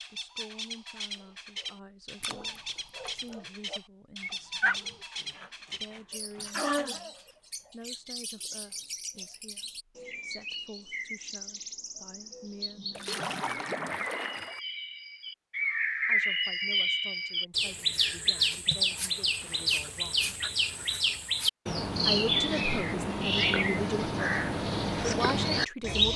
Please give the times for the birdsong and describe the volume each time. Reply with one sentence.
You can hear the birdsong from 0.0 to 26.1 s, getting louder.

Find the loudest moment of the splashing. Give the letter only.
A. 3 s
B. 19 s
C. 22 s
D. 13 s
D.